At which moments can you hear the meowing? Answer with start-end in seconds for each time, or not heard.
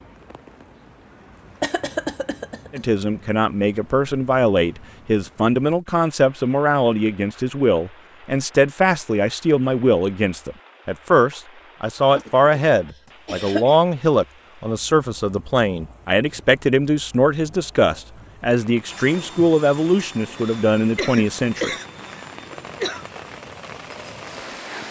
not heard.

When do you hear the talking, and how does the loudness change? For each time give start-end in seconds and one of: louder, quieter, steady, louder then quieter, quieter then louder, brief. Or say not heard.
2.7-21.7 steady.